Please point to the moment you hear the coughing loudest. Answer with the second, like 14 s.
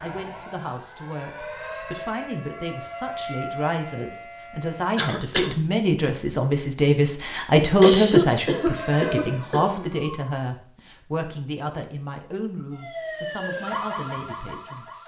8 s.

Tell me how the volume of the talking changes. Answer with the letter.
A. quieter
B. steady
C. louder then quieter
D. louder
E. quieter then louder
C.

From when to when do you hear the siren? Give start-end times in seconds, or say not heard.
0.0-4.8, 8.5-10.2, 12.6-15.0.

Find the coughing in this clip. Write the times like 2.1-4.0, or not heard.
5.0-5.5, 7.8-9.8.